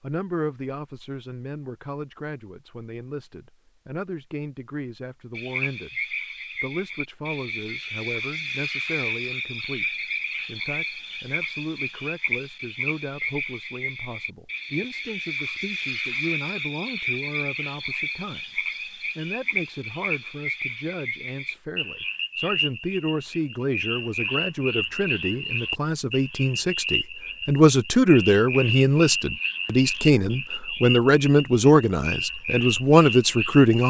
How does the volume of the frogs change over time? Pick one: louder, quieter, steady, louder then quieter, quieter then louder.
steady.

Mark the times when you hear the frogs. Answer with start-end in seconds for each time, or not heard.
5.3-33.8.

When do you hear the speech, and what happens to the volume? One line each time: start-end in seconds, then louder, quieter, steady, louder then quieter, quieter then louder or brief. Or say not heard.
0.0-33.8 louder.